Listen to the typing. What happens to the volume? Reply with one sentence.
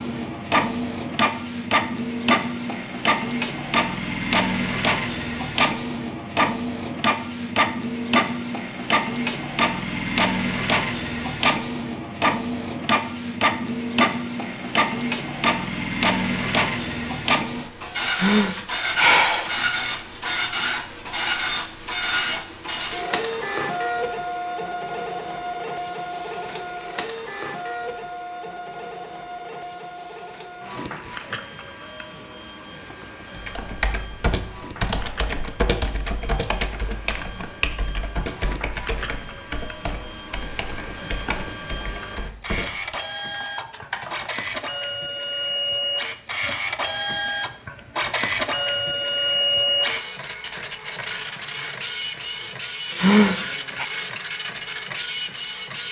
The volume of the typing goes down.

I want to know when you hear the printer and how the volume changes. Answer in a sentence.
The printer can be heard from 0.0 to 55.8 s, getting quieter then louder.